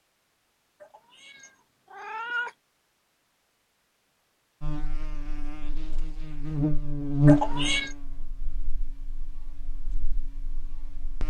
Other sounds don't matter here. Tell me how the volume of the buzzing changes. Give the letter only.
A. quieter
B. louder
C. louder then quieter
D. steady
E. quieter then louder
C.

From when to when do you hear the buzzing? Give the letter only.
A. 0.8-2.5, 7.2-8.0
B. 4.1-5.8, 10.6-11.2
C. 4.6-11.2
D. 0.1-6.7
C.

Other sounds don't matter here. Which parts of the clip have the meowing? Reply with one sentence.
The meowing can be heard from 0.8 to 2.5 s and from 7.2 to 8.0 s.